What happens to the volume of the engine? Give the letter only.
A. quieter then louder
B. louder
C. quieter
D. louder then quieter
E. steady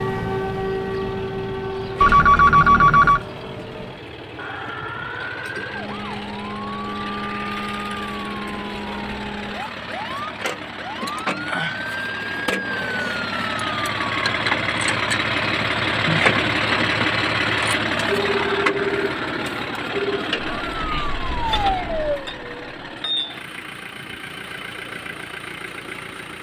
D.